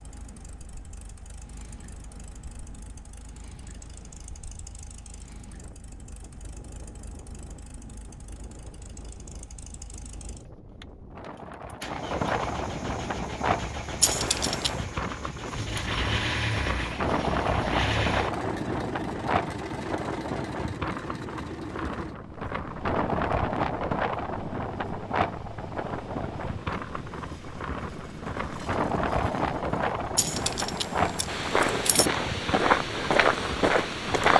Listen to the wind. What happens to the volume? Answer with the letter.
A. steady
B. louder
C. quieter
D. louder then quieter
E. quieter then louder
B.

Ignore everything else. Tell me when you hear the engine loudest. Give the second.
16 s.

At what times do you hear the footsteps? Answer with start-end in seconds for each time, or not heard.
31.2-34.3.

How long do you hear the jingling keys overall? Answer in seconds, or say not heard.
3 s.